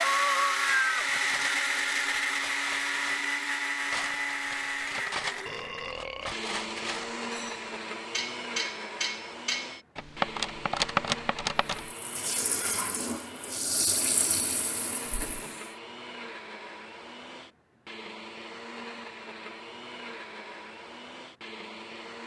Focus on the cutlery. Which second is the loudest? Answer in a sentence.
The loudest moment of the cutlery is at 11 seconds.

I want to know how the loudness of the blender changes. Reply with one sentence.
The loudness of the blender goes down.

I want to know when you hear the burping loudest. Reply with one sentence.
The loudest moment of the burping is at 6 seconds.